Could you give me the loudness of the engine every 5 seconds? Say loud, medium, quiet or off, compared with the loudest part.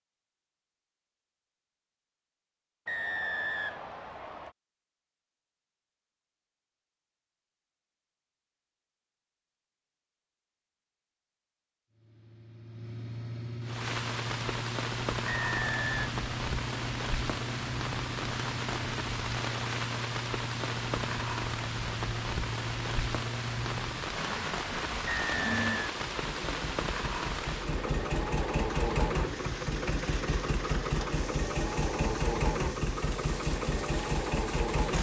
off, off, medium, medium, medium, loud, loud.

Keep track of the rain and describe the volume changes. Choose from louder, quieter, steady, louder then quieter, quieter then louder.
quieter.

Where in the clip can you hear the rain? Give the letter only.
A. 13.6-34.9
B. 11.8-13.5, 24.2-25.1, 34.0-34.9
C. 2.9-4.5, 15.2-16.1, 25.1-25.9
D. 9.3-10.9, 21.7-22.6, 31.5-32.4
A.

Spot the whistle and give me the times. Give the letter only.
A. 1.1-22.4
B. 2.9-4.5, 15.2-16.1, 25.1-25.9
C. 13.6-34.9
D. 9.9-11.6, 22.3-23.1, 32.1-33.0
B.